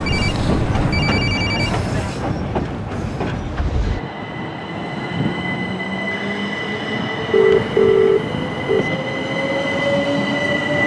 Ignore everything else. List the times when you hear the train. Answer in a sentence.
You can hear the train from 0.0 to 10.8 s.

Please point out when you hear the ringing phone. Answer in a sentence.
You can hear the ringing phone from 0.1 to 2.0 s and from 7.3 to 8.9 s.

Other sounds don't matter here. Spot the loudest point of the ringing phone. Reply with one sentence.
The volume of the ringing phone peaks at 8 seconds.